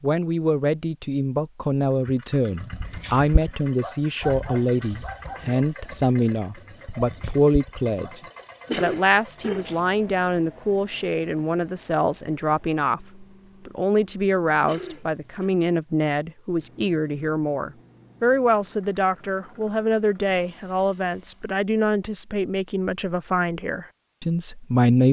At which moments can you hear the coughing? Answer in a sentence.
The coughing can be heard from 8.7 to 9.8 s and from 14.7 to 15.5 s.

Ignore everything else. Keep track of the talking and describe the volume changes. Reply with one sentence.
The volume of the talking stays about the same.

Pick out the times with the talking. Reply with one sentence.
You can hear the talking from 0.0 to 25.0 s.